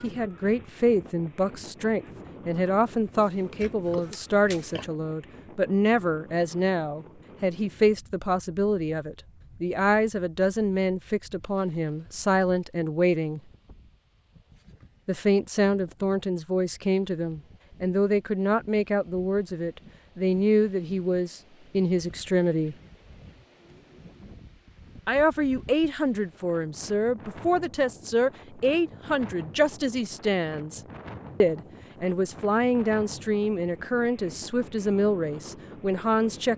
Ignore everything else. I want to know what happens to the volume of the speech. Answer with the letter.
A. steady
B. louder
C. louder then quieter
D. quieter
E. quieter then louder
A.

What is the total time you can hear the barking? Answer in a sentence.
You can't hear the barking here.